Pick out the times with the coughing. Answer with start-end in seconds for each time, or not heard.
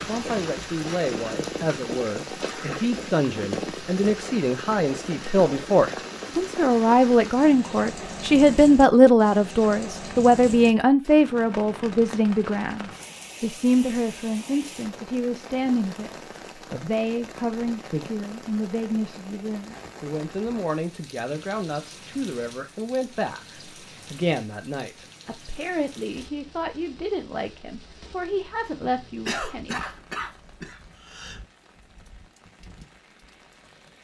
28.8-31.4.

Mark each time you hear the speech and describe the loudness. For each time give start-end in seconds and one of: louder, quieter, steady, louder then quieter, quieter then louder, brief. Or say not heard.
0.1-29.8 louder then quieter.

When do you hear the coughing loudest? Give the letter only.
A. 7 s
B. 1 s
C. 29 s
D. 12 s
C.